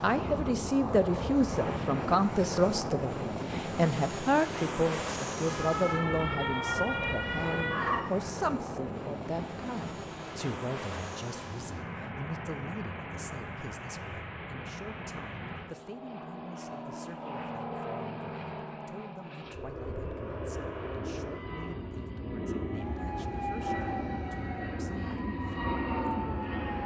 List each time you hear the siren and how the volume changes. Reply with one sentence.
The siren can be heard briefly from 5.5 to 8.3 s; and from 22.7 to 26.8 s, getting quieter then louder.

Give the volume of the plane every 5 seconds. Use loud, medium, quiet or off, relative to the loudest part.
loud, loud, medium, medium, loud, loud.